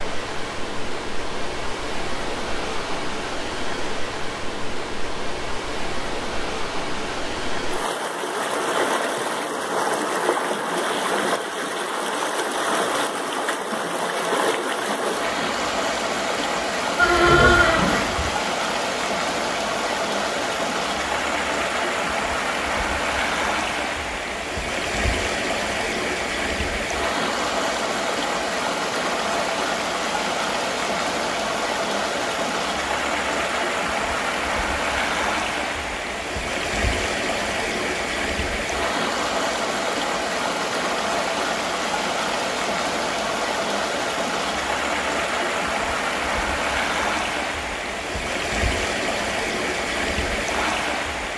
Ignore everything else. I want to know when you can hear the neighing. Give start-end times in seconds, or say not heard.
16.9-18.3.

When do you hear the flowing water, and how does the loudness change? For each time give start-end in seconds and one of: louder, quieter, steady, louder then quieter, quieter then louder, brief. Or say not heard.
0.0-51.3 steady.